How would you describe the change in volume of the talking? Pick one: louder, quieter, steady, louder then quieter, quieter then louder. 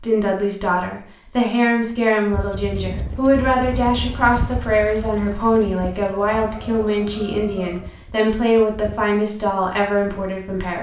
steady.